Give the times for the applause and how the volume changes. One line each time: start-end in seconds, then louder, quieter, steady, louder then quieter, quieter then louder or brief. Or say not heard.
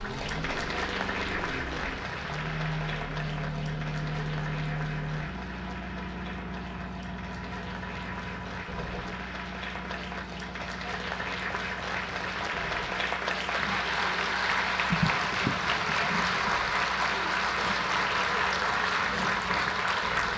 0.0-20.3 quieter then louder.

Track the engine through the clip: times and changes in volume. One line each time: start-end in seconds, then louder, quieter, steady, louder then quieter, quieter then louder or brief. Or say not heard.
0.0-20.3 quieter.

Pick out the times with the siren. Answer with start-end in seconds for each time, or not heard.
not heard.